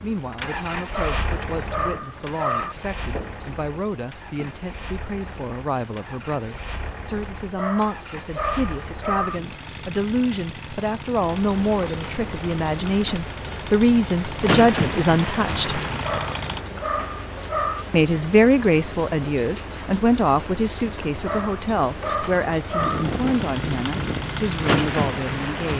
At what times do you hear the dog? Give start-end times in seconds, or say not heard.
0.9-2.8, 7.5-9.4, 16.0-17.9, 21.2-23.1.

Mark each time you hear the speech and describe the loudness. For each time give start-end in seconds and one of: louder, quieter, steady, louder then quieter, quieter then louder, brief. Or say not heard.
0.0-15.8 louder
17.9-25.7 quieter.